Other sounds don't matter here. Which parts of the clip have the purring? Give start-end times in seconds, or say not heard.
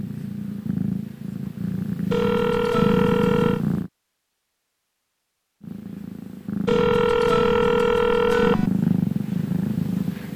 0.0-3.9, 5.6-10.3.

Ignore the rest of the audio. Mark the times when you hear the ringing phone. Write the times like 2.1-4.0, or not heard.
2.1-3.6, 6.7-8.7.